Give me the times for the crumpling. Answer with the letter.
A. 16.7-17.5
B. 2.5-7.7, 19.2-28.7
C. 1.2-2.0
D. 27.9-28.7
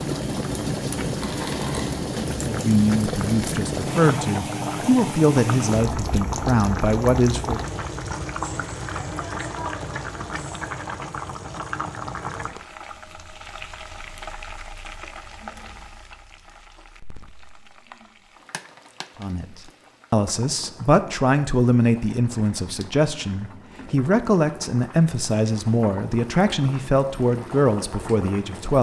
C.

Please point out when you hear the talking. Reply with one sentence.
You can hear the talking from 2.5 to 7.7 s and from 19.2 to 28.7 s.